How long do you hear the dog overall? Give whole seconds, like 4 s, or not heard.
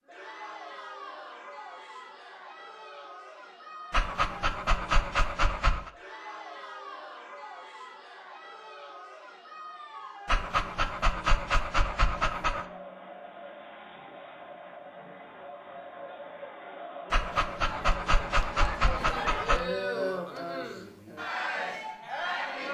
7 s.